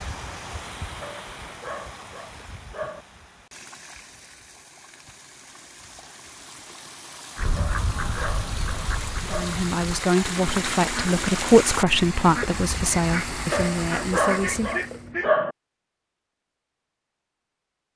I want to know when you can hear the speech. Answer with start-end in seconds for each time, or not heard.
9.3-14.8.